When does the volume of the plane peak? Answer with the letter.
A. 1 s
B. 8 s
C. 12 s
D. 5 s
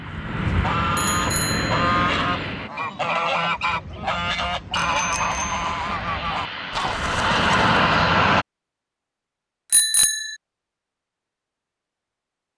B.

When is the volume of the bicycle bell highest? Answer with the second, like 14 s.
10 s.